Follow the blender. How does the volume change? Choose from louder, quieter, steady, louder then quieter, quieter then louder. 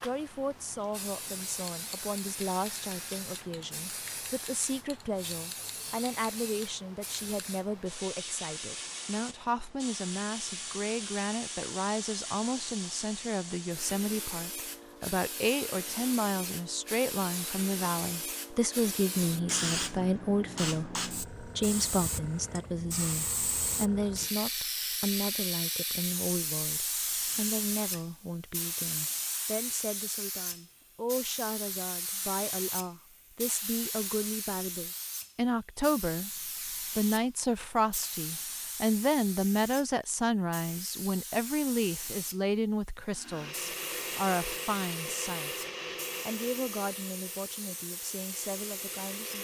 quieter.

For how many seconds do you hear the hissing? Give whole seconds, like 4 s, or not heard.
49 s.